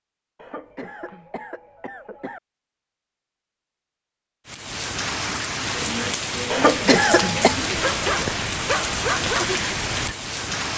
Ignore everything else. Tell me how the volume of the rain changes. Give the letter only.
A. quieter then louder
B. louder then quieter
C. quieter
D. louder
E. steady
E.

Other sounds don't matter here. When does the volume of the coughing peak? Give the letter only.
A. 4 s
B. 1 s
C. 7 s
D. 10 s
C.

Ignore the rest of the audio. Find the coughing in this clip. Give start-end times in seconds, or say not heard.
0.3-2.4, 6.5-7.5.